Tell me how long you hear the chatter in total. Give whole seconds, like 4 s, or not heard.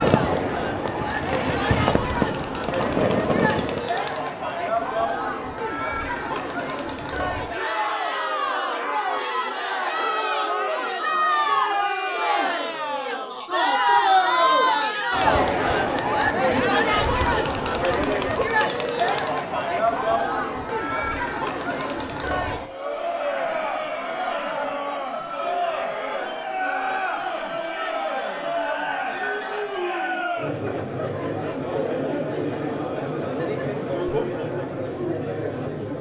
36 s.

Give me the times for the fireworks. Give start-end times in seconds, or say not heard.
0.0-3.9.